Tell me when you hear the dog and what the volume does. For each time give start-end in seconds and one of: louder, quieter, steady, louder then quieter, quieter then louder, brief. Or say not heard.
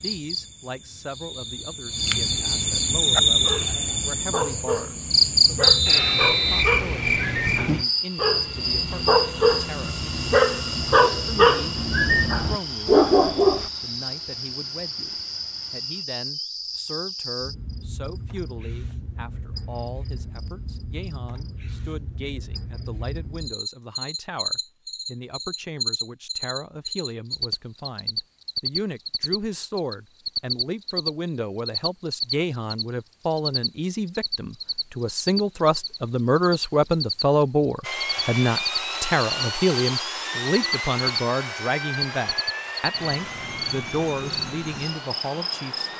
3.0-13.7 louder.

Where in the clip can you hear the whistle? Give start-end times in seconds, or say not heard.
5.6-6.8.